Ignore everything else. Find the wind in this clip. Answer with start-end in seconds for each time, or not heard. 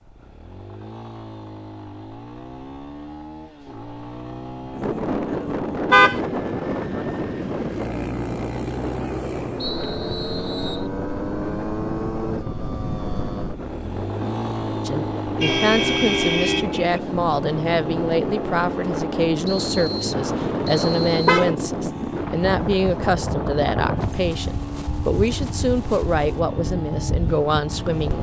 4.7-28.1.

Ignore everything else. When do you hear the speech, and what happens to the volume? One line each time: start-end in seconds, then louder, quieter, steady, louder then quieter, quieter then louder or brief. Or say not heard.
14.8-28.1 steady.